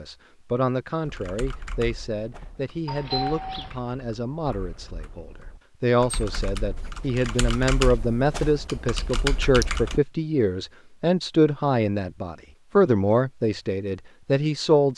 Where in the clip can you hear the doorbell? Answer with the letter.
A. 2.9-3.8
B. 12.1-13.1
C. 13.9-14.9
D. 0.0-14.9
A.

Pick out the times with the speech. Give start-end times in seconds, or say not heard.
0.0-14.9.